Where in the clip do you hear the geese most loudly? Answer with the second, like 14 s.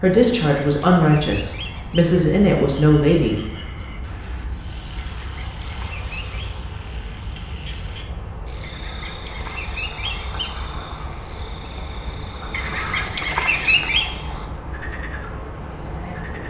14 s.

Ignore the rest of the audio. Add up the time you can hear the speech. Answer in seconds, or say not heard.
3 s.